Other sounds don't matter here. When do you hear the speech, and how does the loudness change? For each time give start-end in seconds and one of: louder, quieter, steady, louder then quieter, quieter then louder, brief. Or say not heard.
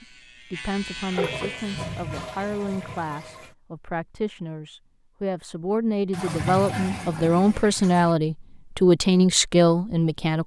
0.0-10.4 louder.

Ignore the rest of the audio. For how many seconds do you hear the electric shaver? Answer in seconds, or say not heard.
2 s.